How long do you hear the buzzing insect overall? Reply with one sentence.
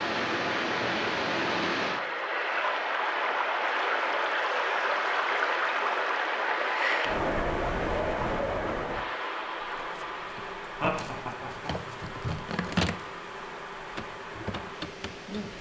You can hear the buzzing insect for 6 seconds altogether.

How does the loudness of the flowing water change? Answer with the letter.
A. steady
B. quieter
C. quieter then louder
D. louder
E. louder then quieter
B.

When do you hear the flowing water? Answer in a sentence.
The flowing water can be heard from 0.0 to 15.5 s.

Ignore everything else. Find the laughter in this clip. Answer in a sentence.
The laughter can be heard from 10.3 to 11.8 s.